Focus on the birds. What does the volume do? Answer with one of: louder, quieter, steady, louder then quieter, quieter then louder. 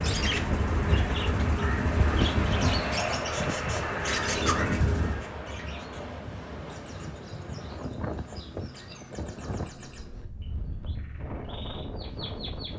quieter.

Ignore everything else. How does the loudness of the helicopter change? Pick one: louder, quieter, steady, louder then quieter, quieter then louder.
quieter then louder.